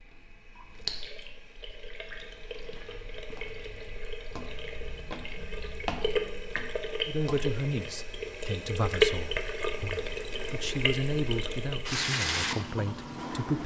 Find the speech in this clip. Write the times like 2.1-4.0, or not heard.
7.0-13.6.